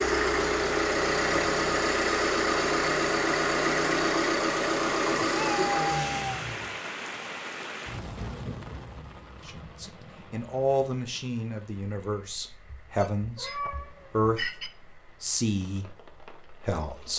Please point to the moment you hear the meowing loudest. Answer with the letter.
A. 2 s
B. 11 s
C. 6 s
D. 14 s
C.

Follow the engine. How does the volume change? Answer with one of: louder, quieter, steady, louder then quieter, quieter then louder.
steady.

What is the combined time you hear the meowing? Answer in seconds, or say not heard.
2 s.